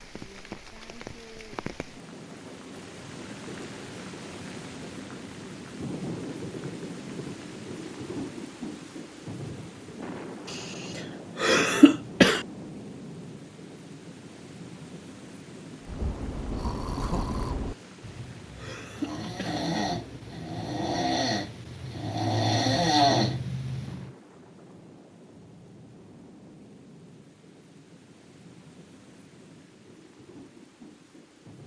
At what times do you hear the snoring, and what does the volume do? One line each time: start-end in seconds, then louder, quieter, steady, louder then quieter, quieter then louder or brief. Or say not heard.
15.8-24.1 quieter then louder.